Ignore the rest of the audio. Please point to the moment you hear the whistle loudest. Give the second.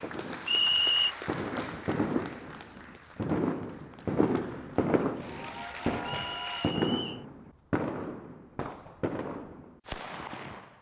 1 s.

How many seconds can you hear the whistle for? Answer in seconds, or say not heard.
2 s.